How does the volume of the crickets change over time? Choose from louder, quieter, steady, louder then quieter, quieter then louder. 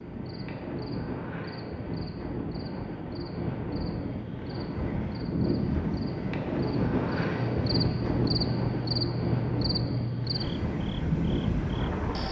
louder.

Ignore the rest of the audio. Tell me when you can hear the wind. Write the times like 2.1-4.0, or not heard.
0.0-12.2.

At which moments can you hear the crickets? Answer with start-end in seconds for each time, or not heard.
0.0-12.2.